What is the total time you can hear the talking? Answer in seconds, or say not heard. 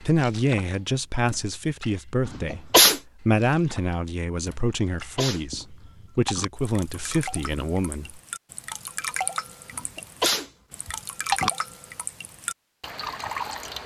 8 s.